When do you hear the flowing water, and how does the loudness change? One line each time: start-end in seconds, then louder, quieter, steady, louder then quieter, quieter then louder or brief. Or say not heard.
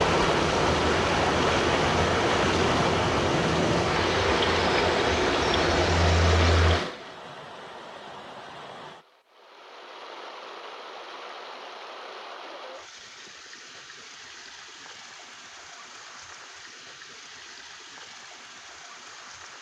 0.0-19.5 quieter.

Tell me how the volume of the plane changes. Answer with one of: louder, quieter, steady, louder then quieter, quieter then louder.
steady.